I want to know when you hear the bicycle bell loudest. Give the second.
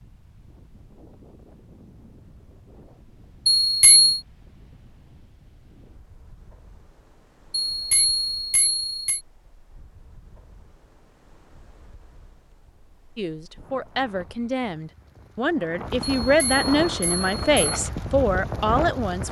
4 s.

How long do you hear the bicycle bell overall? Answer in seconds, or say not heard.
4 s.